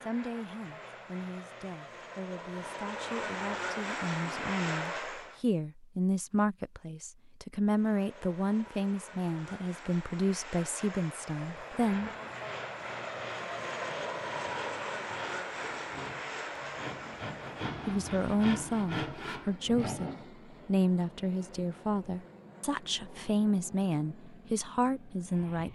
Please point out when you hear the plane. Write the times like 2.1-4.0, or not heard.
0.0-5.4, 7.6-25.6.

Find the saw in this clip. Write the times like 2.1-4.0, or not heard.
11.6-20.2.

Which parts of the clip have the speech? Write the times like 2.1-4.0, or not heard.
0.0-12.1, 17.9-25.6.